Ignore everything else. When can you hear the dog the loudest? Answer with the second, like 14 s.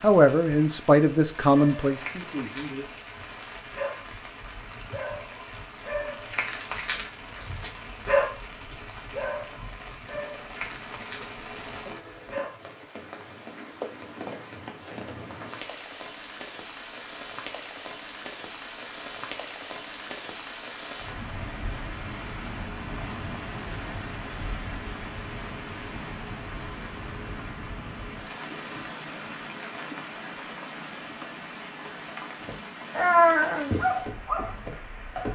33 s.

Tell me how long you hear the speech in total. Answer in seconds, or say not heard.
3 s.